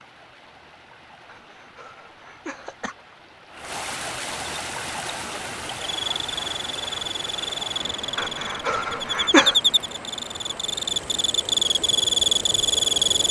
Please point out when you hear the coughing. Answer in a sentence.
You can hear the coughing from 1.2 to 3.0 s and from 8.2 to 9.6 s.